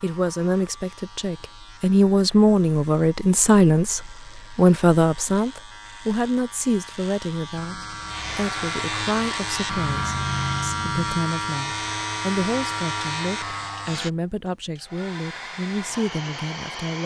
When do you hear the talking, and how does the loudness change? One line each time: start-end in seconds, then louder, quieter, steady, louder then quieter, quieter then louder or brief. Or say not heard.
0.0-17.0 quieter.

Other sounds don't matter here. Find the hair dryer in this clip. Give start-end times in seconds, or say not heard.
8.1-17.0.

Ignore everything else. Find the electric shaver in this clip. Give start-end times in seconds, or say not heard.
0.0-14.1.